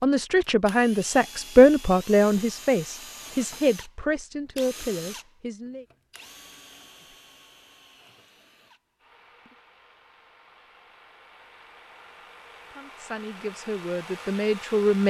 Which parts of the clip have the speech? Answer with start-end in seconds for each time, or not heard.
0.0-5.8, 12.7-15.0.